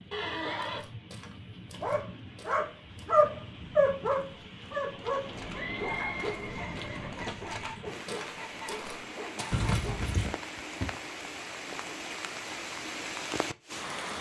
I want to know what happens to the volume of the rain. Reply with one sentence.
The volume of the rain goes up.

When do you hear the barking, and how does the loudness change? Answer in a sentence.
You can hear the barking from 1.8 to 10.1 s, getting quieter.